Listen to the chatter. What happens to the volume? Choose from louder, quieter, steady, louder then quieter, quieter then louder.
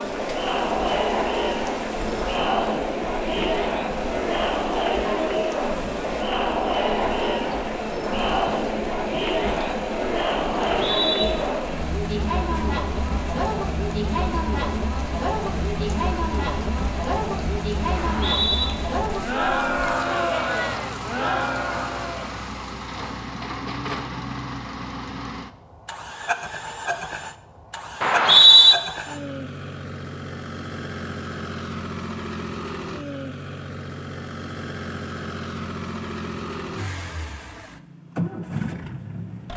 steady.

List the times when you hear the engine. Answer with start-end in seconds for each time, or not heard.
0.0-39.5.